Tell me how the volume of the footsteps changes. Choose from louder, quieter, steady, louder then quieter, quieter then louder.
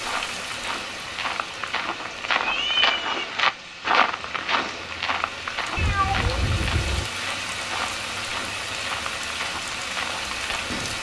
louder then quieter.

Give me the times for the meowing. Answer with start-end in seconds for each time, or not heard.
2.4-3.2, 5.8-7.0.